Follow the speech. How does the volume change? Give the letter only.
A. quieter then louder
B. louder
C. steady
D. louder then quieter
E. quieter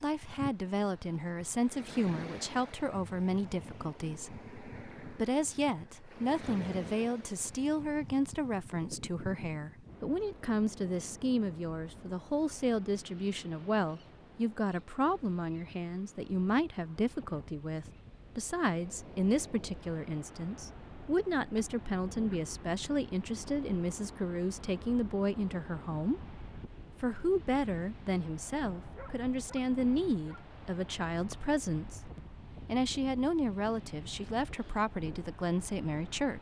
C.